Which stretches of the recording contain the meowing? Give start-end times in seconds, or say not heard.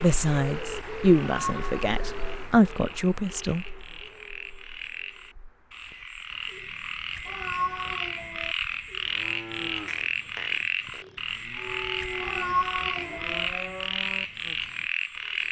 1.2-2.4, 7.2-8.6, 12.2-13.5.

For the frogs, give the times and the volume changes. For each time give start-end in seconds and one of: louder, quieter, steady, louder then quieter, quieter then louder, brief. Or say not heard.
0.0-15.4 louder.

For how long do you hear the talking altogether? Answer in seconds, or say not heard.
4 s.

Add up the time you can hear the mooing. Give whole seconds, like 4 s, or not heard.
5 s.